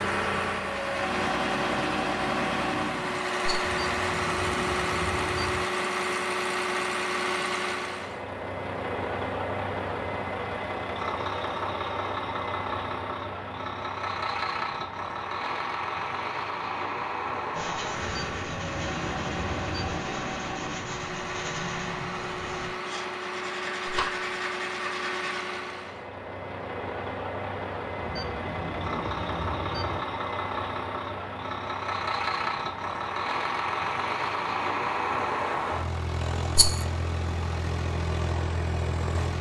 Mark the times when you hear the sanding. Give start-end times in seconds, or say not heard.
17.5-25.4.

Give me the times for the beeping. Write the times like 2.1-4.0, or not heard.
3.6-5.7, 18.0-20.0, 28.0-30.0.